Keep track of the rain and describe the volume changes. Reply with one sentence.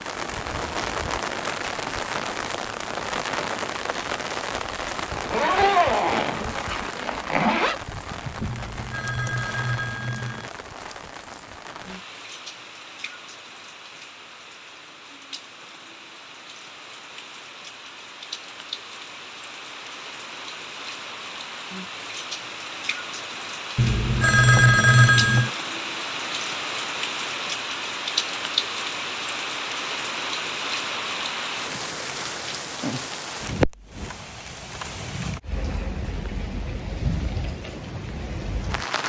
The volume of the rain goes down, then up.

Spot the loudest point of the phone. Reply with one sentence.
The volume of the phone peaks at 25 seconds.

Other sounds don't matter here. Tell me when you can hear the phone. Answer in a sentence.
You can hear the phone from 8.4 to 10.5 s and from 23.8 to 25.5 s.